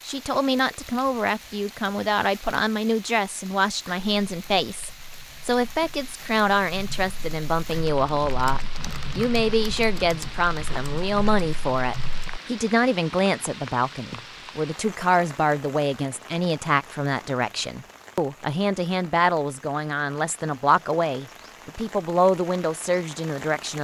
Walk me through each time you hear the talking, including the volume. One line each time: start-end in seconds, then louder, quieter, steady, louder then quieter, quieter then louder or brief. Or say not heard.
0.1-23.7 steady.